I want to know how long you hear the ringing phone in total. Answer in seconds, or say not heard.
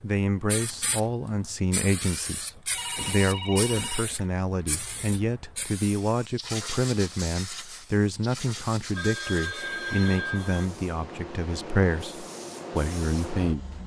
3 s.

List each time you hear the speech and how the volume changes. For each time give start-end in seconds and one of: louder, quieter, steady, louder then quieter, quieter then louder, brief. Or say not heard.
0.0-13.8 steady.